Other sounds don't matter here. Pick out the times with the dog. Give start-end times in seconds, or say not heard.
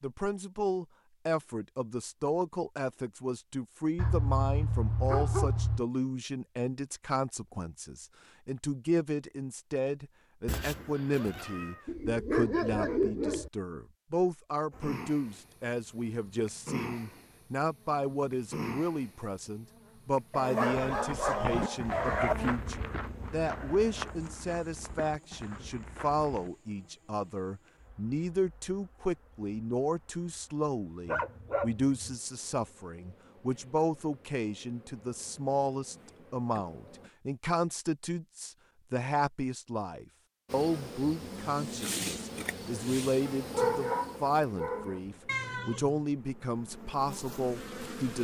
4.0-5.8, 11.8-13.5, 20.3-22.4, 31.1-31.9, 43.2-45.0.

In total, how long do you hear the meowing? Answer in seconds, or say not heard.
2 s.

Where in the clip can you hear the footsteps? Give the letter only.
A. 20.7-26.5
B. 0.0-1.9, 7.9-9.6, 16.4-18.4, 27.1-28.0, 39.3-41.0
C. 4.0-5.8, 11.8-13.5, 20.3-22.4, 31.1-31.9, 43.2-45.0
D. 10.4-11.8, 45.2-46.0
A.